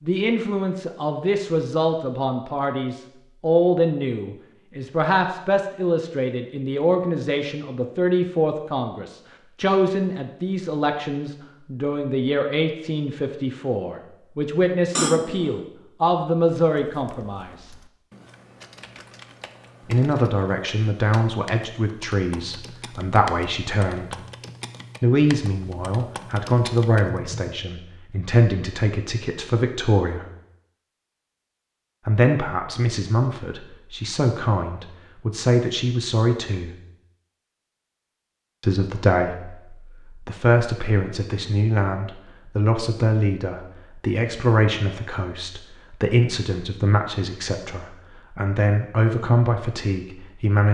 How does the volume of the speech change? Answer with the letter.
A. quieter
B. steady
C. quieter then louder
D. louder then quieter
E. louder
B.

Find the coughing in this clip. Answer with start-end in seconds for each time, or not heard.
14.9-15.7.